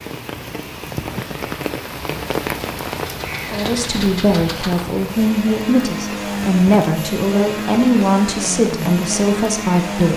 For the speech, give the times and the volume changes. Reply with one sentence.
You can hear the speech from 3.5 to 10.1 s, at a steady volume.